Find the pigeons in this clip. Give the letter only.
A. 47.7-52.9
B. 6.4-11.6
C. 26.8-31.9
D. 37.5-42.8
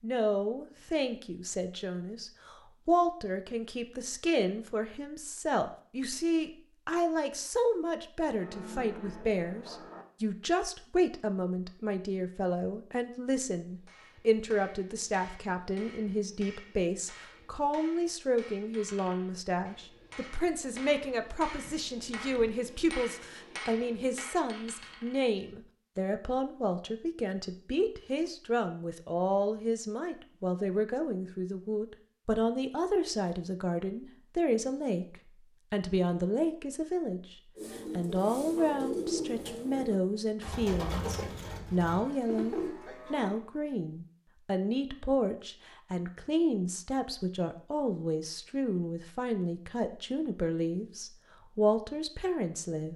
D.